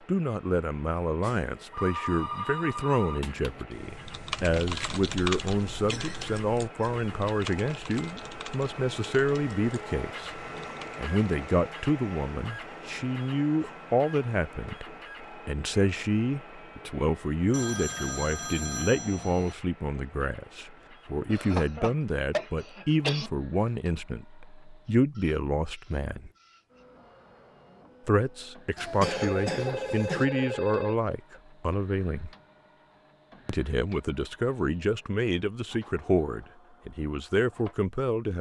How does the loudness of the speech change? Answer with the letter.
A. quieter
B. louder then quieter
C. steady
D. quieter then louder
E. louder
C.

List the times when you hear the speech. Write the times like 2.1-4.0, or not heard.
0.1-26.3, 28.1-32.3, 33.5-38.3.